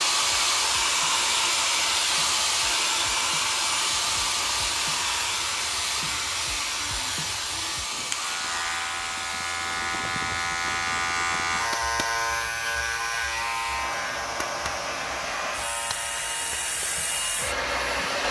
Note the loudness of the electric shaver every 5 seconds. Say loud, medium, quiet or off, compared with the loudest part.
quiet, medium, loud, medium.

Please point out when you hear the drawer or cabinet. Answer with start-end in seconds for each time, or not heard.
not heard.